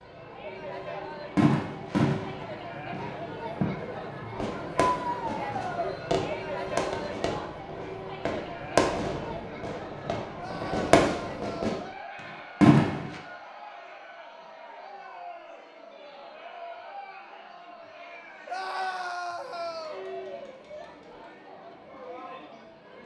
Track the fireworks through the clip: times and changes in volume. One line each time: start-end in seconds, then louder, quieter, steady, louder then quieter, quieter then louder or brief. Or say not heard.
1.4-11.8 quieter then louder
12.6-13.2 brief.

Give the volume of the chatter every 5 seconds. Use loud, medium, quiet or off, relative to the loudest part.
loud, loud, medium, medium, medium.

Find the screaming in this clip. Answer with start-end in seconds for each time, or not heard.
4.8-6.0, 10.3-11.8, 18.4-20.1.